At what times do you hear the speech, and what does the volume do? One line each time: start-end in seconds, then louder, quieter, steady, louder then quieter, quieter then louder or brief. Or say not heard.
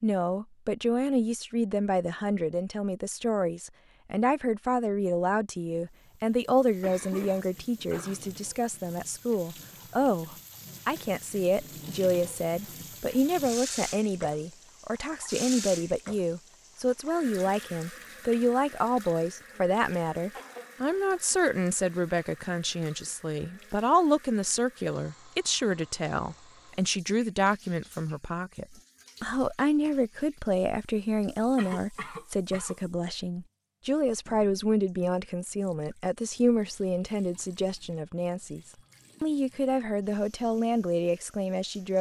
0.0-38.6 steady
39.2-41.9 brief.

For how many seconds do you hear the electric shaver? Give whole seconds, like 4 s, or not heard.
not heard.